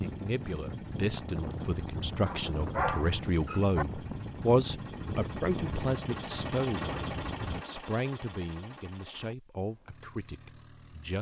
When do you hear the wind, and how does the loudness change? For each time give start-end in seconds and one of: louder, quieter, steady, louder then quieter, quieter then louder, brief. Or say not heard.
0.0-7.7 steady.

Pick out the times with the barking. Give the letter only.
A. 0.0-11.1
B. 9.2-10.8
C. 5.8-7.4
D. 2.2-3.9
D.